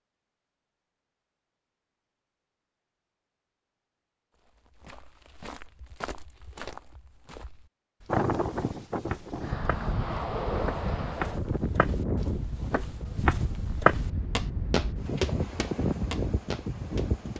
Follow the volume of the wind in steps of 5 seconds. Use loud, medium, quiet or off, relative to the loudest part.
off, loud, loud, loud.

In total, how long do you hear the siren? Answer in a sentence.
You can't hear the siren here.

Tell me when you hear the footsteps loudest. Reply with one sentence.
The loudest moment of the footsteps is at 14 seconds.